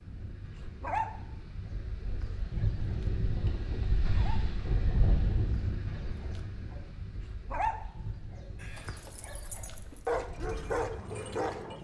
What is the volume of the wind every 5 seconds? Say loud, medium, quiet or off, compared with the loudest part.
loud, loud, medium.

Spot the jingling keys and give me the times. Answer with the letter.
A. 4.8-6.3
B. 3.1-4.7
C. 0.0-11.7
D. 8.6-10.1
D.